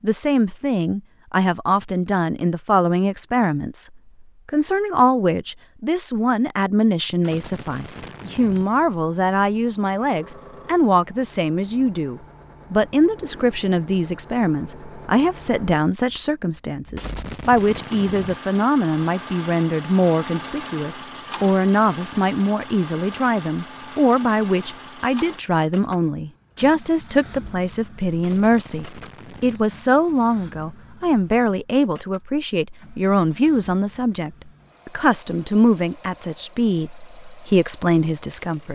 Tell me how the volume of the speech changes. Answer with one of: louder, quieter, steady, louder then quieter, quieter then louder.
steady.